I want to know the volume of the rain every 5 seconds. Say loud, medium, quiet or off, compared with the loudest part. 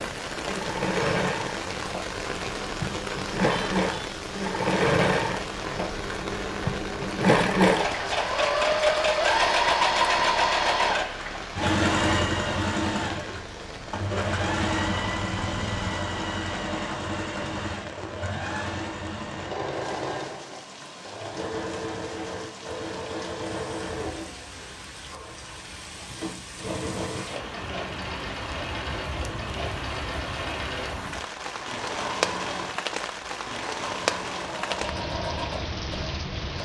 loud, loud, medium, medium, medium, medium, loud, loud.